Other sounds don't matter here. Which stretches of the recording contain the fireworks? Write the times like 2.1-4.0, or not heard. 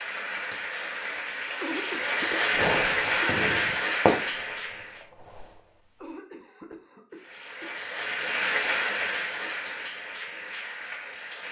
2.5-5.6.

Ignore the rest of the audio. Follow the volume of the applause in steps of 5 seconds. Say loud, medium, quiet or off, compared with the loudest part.
loud, loud, medium.